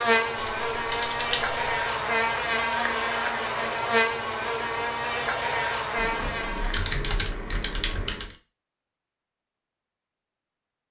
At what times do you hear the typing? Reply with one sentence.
You can hear the typing from 0.3 to 1.6 s and from 6.0 to 8.3 s.